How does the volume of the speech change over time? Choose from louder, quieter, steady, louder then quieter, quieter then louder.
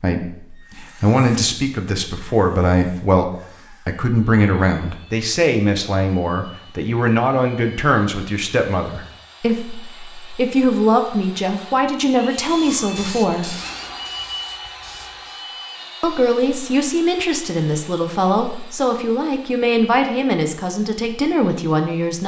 steady.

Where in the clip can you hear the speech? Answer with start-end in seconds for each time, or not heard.
0.0-13.6, 16.0-22.2.